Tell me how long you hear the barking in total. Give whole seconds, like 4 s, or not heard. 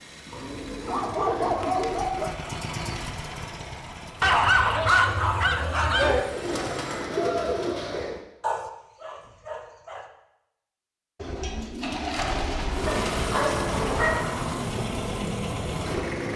7 s.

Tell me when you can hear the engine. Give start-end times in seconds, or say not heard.
0.0-7.1, 12.7-16.3.